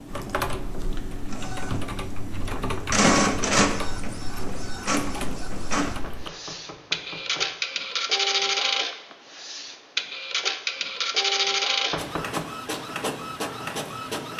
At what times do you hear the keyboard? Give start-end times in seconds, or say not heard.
0.1-6.3.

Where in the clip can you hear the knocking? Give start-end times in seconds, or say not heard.
2.5-3.0, 6.0-7.5, 11.9-12.5.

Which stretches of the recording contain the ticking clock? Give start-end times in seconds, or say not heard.
not heard.